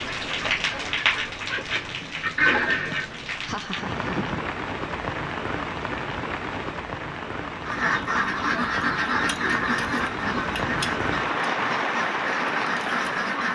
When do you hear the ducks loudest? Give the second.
3 s.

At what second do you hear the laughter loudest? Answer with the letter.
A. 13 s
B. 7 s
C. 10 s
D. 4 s
D.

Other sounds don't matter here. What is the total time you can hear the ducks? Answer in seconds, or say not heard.
9 s.